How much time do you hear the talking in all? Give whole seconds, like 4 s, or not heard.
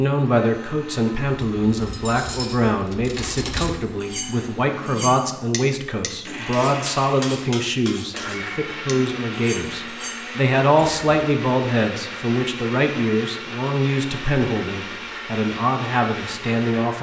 17 s.